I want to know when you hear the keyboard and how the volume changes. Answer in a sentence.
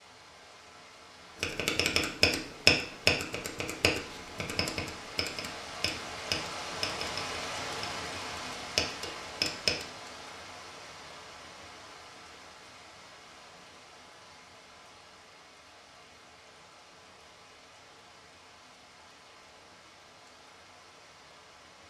The keyboard can be heard from 1.4 to 9.8 s, getting quieter then louder.